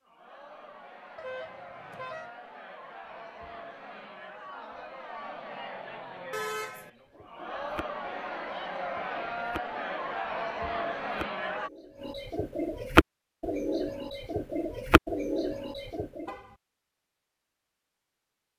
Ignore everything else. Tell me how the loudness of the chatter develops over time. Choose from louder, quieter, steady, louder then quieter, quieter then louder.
louder.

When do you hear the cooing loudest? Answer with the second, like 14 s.
13 s.